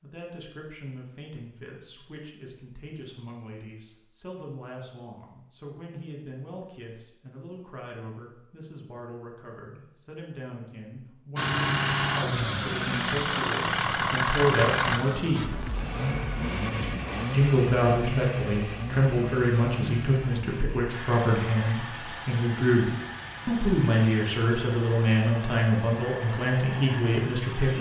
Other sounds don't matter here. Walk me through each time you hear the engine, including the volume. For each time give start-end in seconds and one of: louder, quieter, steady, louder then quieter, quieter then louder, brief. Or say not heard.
11.3-27.7 quieter.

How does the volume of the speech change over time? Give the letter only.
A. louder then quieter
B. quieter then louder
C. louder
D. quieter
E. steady
C.